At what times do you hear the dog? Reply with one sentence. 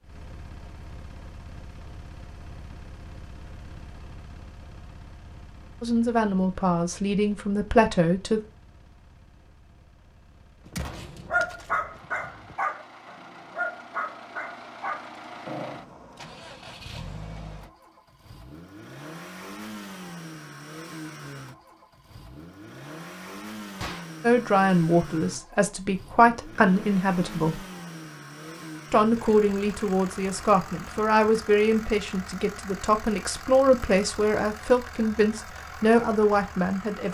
You can hear the dog from 11.1 to 15.9 s.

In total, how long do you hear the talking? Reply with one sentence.
The talking can be heard for 14 seconds in total.